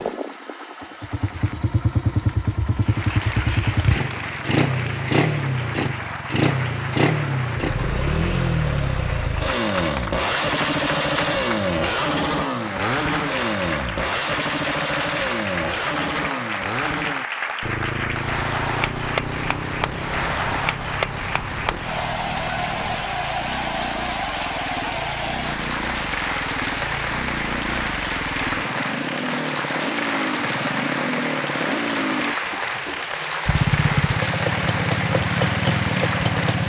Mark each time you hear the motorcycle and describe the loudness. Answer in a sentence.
You can hear the motorcycle from 0.0 to 36.6 s, getting quieter then louder.